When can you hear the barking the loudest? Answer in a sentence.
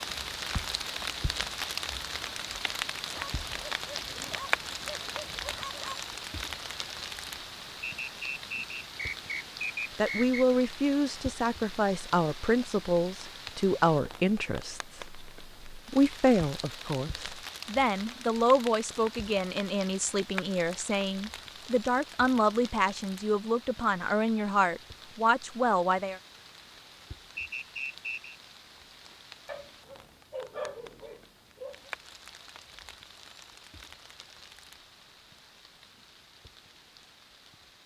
The loudest moment of the barking is at 31 seconds.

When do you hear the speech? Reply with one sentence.
The speech can be heard from 9.9 to 26.2 s.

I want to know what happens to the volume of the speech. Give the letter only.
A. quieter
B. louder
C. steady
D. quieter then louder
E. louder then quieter
C.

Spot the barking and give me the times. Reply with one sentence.
You can hear the barking from 3.1 to 6.0 s and from 29.4 to 31.9 s.